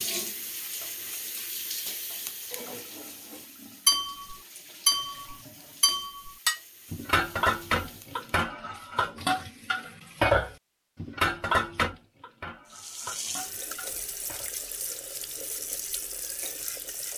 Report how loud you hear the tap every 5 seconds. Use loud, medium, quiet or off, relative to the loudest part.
loud, quiet, loud, loud.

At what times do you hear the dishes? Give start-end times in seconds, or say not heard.
2.5-14.5.